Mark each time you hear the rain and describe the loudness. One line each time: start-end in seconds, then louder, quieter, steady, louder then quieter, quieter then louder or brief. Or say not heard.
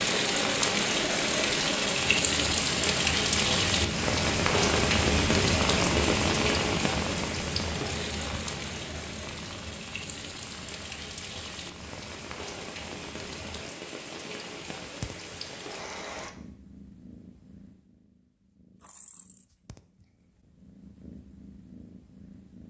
0.0-16.3 quieter.